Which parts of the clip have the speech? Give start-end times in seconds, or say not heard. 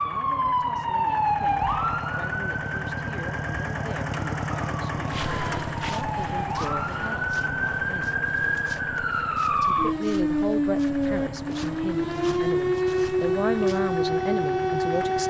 0.0-5.2, 6.0-8.2, 9.6-15.2.